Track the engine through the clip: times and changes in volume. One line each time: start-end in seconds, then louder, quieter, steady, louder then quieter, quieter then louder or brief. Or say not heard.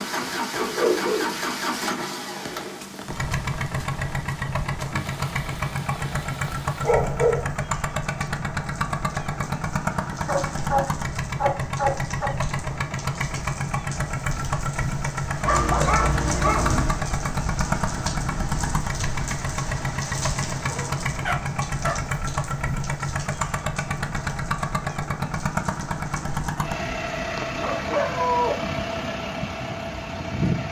0.0-30.6 steady.